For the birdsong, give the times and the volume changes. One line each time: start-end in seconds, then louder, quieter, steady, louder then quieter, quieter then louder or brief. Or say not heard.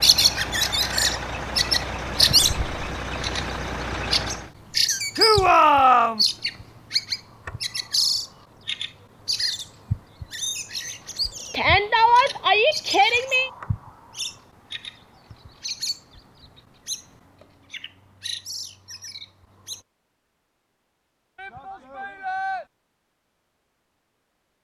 0.0-19.9 quieter.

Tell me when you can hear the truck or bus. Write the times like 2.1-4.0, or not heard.
0.0-4.5.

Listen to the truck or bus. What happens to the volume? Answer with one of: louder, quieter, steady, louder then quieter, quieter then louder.
steady.